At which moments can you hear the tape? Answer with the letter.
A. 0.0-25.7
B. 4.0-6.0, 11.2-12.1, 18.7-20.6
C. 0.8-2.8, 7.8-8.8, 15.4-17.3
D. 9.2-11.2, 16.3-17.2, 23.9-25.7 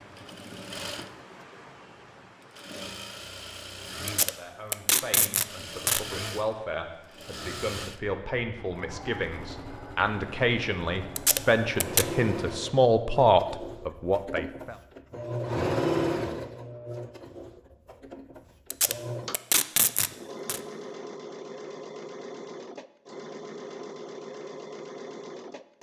B.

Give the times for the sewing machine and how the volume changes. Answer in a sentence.
You can hear the sewing machine from 0.0 to 25.7 s, getting louder then quieter.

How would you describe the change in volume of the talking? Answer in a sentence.
The volume of the talking goes up.